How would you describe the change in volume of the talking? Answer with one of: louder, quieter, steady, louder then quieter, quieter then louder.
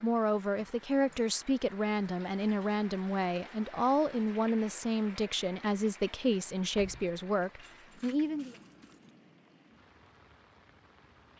steady.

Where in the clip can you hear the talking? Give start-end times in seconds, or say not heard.
0.0-8.6.